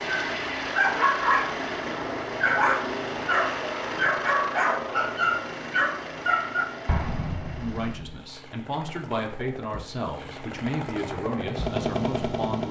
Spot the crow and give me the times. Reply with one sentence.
The crow can't be heard in this clip.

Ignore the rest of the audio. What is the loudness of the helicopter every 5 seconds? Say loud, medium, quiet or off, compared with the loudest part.
loud, medium, loud.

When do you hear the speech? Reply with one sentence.
You can hear the speech from 7.5 to 12.6 s.